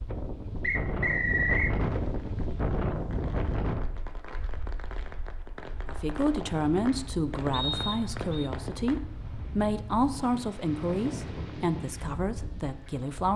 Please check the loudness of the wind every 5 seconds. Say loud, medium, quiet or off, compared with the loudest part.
loud, medium, medium.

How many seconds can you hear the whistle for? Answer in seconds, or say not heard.
2 s.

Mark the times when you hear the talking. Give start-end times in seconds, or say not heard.
5.8-13.3.